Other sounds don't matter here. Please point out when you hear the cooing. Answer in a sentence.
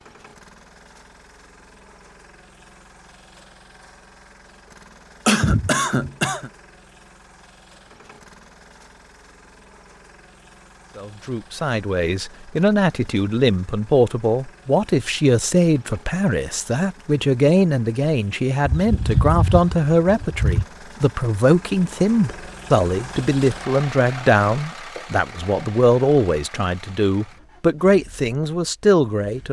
The cooing can be heard from 18.6 to 20.6 s.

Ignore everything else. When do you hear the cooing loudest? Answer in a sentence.
The loudest moment of the cooing is at 19 seconds.